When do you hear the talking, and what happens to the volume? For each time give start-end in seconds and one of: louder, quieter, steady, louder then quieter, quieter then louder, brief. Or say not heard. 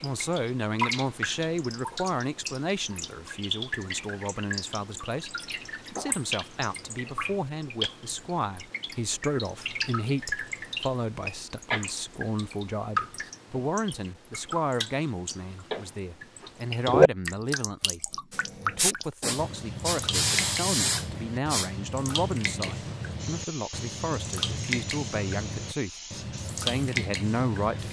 0.0-27.8 steady.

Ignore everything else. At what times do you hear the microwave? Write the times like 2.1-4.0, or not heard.
not heard.